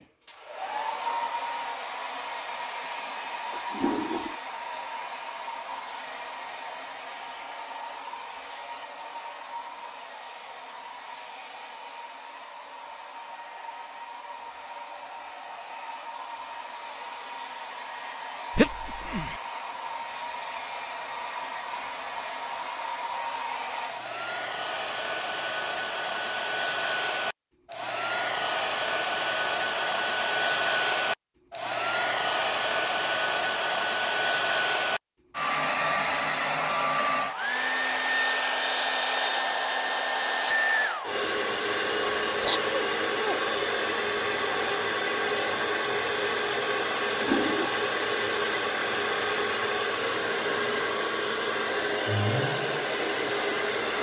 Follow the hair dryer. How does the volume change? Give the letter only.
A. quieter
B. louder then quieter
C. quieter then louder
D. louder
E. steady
D.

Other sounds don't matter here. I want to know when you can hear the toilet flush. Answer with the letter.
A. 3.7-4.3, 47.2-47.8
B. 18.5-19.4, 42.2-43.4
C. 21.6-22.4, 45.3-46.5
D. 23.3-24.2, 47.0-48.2
A.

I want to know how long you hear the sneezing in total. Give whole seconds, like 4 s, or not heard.
2 s.